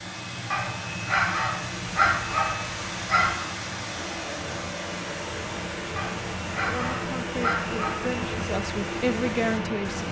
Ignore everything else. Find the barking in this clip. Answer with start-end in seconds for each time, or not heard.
0.5-3.5, 6.0-8.1.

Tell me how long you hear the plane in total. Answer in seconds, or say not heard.
10 s.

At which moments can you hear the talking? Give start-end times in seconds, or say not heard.
6.7-10.0.